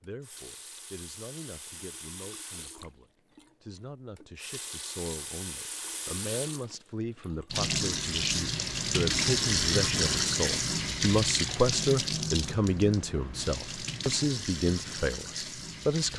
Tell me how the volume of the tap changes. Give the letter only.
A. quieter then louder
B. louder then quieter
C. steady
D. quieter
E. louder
B.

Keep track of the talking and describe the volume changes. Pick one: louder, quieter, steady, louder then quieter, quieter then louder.
louder.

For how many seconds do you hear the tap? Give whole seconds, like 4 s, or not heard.
16 s.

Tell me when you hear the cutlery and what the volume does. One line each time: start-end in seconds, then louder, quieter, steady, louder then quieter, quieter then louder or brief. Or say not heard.
not heard.